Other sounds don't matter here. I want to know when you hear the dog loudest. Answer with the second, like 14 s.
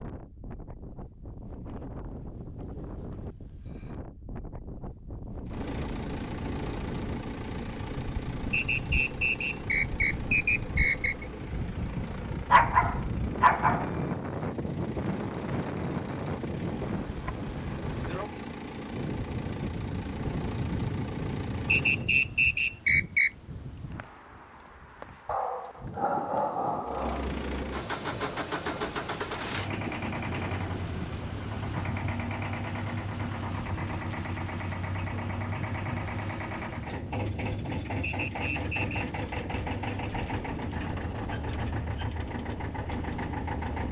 13 s.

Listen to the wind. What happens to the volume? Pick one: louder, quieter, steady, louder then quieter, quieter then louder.
louder then quieter.